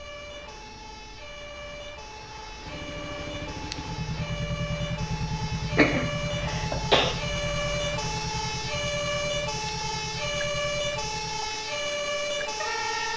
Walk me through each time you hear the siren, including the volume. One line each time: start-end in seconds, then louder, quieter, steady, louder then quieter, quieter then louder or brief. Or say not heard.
0.0-13.1 louder.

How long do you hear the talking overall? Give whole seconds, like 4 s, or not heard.
not heard.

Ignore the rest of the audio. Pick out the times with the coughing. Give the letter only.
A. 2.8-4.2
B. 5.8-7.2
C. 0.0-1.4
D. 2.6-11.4
B.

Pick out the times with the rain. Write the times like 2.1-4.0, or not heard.
not heard.